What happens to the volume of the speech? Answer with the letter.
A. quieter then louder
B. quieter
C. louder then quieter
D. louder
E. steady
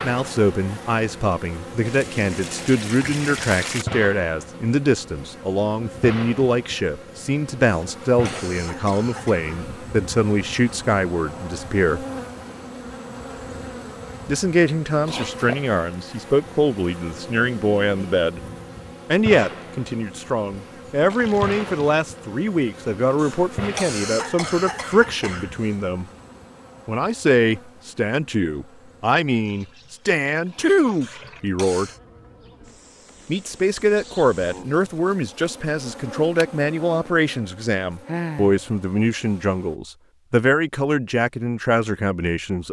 E.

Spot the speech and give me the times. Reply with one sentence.
The speech can be heard from 0.0 to 12.1 s, from 14.2 to 18.4 s, from 19.1 to 26.1 s, from 26.9 to 31.9 s and from 33.2 to 42.6 s.